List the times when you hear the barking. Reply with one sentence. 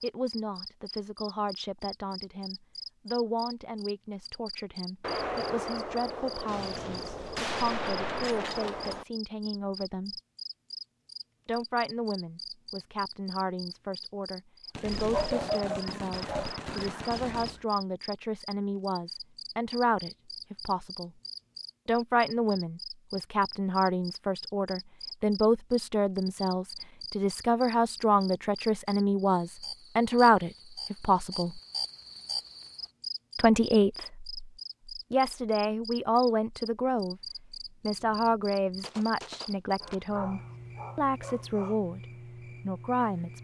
The barking can be heard from 15.1 to 16.6 s and from 39.8 to 41.8 s.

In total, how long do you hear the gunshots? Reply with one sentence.
You can hear the gunshots for 9 seconds altogether.